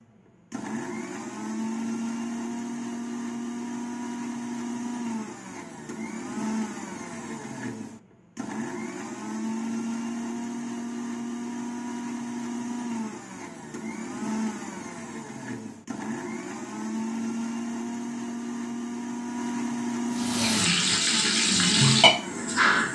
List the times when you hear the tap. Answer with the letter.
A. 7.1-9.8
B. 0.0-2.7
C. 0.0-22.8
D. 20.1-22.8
D.